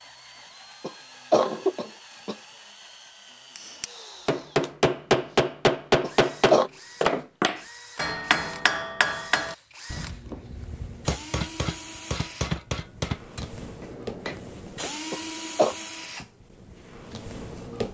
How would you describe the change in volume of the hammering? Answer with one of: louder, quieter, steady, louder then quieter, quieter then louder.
quieter.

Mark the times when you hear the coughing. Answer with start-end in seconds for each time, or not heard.
0.8-2.4, 6.0-6.7, 15.1-15.8.